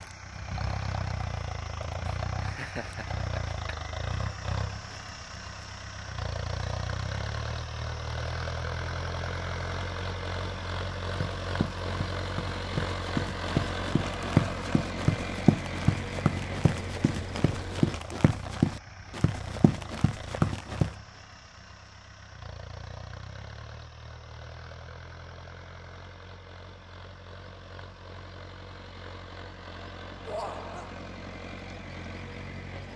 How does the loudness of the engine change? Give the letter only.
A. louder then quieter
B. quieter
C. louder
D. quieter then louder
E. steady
B.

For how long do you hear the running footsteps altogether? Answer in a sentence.
The running footsteps can be heard for 10 seconds in total.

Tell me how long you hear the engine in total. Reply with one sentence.
The engine can be heard for 33 seconds in total.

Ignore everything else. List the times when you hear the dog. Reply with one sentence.
The dog can't be heard in this clip.